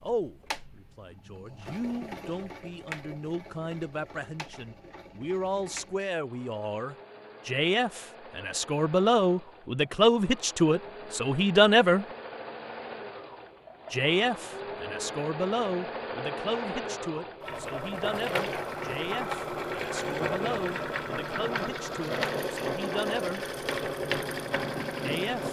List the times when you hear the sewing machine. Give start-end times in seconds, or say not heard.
0.0-25.4.